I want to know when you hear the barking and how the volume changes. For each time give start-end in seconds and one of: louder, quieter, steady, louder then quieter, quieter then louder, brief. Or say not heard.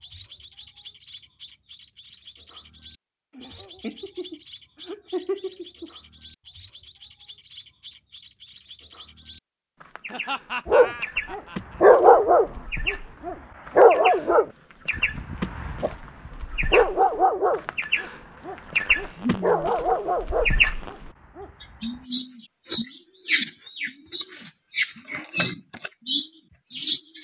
10.7-22.0 quieter.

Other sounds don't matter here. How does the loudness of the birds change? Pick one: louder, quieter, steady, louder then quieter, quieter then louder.
louder.